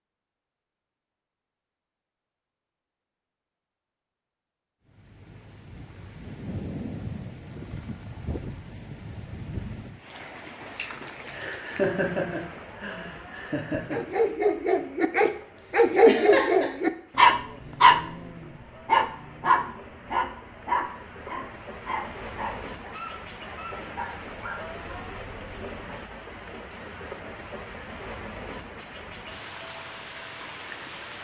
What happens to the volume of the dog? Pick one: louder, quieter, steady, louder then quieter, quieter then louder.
quieter.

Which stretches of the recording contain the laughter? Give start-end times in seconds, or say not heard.
11.3-14.0, 16.1-16.7.